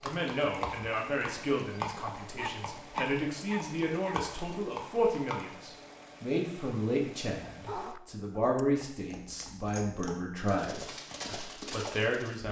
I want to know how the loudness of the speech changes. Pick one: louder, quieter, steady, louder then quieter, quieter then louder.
steady.